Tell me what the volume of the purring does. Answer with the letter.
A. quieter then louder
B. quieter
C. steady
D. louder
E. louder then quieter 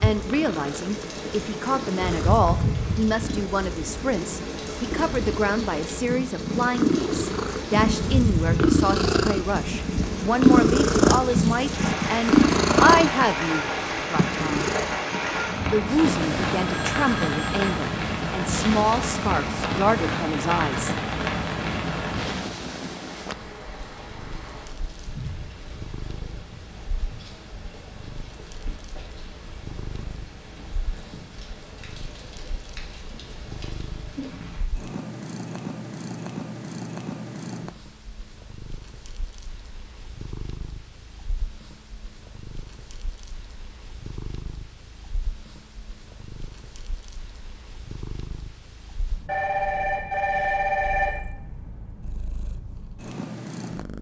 B.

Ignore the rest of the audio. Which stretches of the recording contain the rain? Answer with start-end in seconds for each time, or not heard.
0.0-34.7.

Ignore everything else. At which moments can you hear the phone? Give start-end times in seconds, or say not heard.
16.6-17.8, 49.2-51.2.